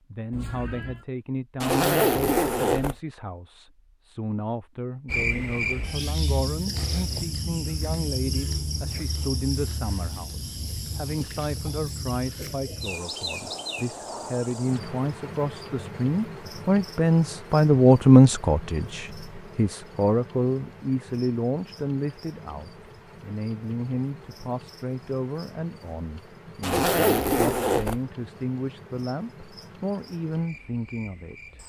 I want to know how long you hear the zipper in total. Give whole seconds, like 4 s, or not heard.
3 s.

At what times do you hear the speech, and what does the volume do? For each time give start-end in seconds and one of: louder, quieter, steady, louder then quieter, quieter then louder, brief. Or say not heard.
0.1-31.6 louder then quieter.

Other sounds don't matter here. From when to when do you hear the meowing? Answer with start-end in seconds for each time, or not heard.
0.3-1.1.